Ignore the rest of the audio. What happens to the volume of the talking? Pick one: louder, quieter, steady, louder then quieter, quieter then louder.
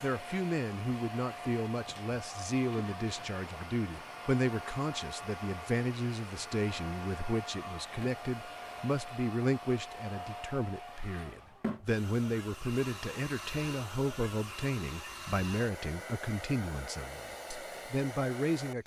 steady.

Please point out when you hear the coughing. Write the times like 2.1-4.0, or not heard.
not heard.